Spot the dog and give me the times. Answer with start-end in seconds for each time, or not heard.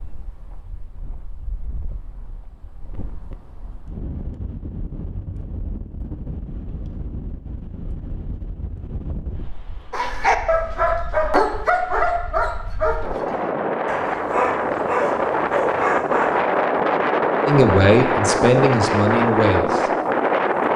9.9-16.4.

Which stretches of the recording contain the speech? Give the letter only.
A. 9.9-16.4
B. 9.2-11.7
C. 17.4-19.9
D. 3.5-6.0
C.